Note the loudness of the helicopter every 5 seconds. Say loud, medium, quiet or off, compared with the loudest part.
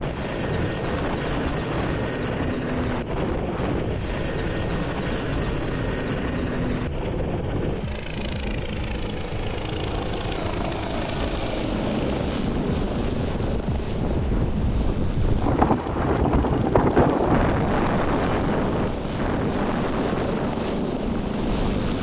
loud, loud, loud, medium, loud.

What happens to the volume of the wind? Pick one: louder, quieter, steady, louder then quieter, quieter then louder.
louder.